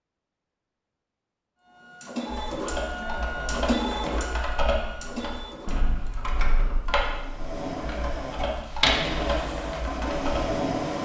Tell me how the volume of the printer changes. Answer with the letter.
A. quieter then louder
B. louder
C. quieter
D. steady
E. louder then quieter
A.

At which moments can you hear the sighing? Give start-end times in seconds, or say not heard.
3.0-3.7, 7.8-8.5.